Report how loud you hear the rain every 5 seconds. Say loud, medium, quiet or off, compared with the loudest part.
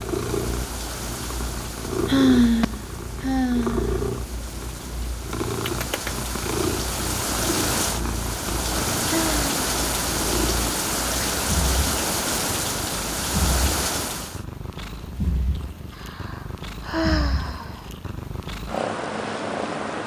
quiet, loud, loud, off.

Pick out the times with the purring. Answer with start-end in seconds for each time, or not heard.
0.0-20.0.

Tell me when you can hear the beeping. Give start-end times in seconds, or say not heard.
not heard.